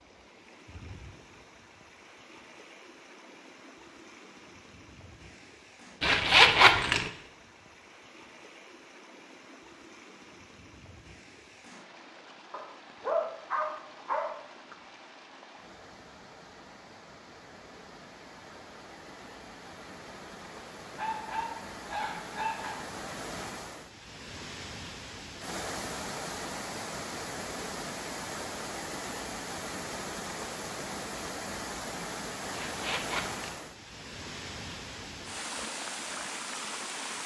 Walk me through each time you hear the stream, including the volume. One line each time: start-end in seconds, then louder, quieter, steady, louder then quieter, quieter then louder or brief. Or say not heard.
0.0-37.2 louder.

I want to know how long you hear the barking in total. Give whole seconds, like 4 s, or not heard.
4 s.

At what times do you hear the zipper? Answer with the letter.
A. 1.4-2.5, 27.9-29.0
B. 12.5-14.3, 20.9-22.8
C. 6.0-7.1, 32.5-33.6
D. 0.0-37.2
C.